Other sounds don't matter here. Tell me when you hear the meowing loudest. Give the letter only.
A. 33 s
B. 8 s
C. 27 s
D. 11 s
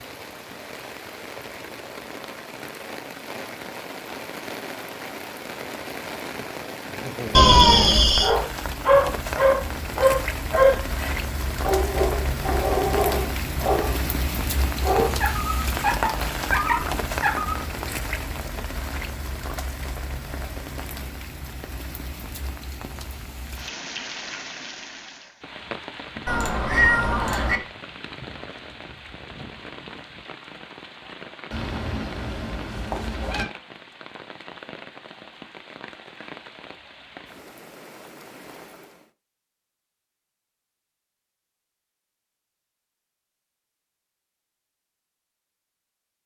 B.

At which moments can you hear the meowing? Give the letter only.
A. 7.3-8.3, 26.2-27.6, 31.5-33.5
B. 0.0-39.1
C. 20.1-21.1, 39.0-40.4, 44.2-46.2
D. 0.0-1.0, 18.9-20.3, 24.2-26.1
A.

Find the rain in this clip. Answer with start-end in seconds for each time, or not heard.
0.0-39.1.